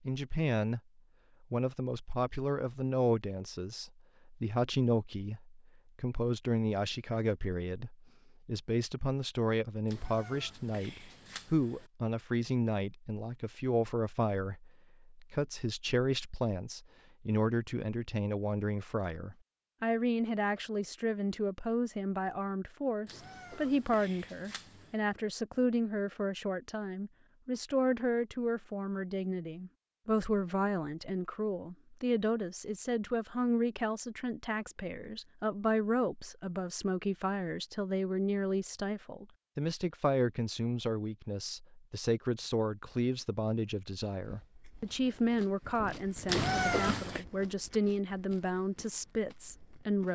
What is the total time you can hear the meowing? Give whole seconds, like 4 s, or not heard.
5 s.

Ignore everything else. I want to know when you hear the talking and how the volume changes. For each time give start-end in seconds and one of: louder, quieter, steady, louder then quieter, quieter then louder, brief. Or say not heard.
0.1-0.8 brief
1.5-50.1 steady.